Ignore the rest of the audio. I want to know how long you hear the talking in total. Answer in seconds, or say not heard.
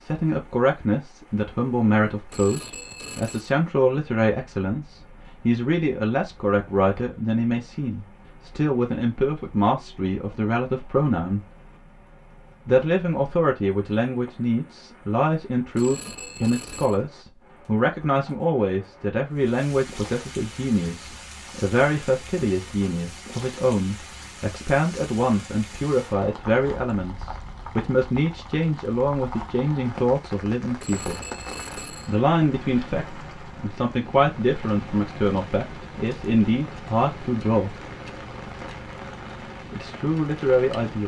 37 s.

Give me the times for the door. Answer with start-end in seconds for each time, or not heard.
not heard.